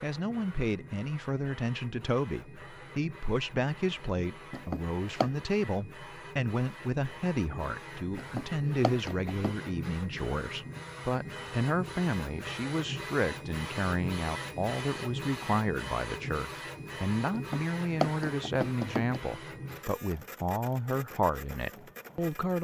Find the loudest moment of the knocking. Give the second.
18 s.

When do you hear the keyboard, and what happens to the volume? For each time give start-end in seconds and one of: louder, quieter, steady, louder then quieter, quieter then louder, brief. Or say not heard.
not heard.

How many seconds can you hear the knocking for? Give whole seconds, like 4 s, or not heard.
4 s.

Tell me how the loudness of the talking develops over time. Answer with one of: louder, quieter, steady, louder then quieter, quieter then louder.
steady.